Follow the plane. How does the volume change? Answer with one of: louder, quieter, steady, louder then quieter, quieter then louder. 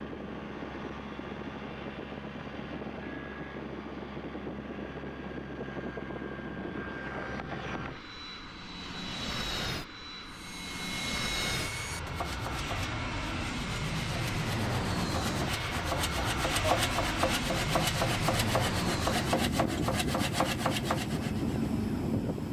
louder.